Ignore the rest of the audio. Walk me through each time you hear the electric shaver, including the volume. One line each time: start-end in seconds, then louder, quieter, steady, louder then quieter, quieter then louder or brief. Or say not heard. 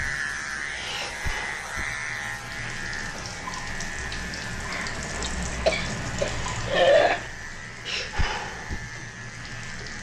0.0-9.9 quieter.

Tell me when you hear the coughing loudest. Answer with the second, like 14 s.
7 s.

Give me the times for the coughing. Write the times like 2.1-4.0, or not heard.
4.7-7.2.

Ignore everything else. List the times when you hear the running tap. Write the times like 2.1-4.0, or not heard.
0.0-9.9.